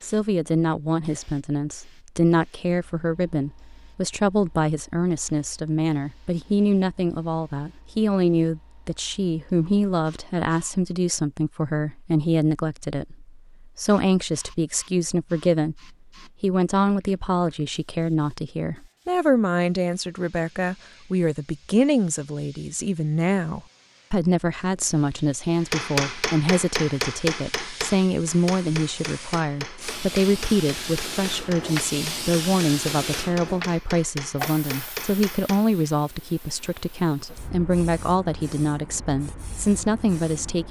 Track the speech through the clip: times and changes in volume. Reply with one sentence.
You can hear the speech from 0.0 to 40.6 s, at a steady volume.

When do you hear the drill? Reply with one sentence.
You can't hear the drill here.